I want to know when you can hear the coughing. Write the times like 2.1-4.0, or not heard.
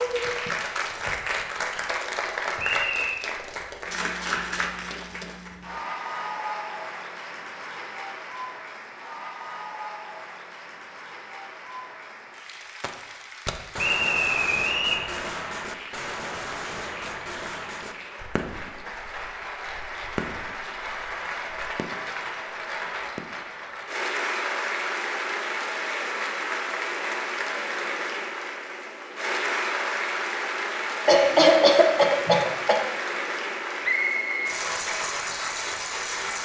31.1-32.9.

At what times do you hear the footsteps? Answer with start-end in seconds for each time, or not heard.
not heard.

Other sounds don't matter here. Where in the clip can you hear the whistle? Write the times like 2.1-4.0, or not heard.
2.5-3.2, 13.8-15.1, 33.8-34.5.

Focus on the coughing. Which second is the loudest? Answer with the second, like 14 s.
32 s.